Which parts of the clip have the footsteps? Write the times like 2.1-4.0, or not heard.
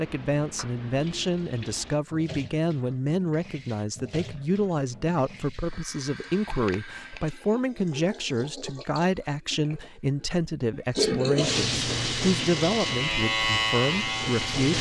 not heard.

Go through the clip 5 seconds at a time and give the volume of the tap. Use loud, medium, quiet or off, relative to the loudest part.
quiet, quiet, loud.